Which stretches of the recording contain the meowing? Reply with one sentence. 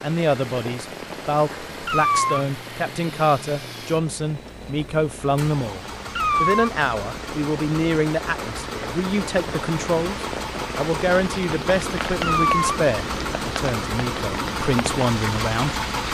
The meowing can be heard from 1.9 to 2.5 s, from 6.2 to 6.7 s and from 12.2 to 12.8 s.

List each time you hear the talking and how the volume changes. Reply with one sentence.
You can hear the talking from 0.0 to 5.8 s, at a steady volume; and from 6.4 to 16.0 s, at a steady volume.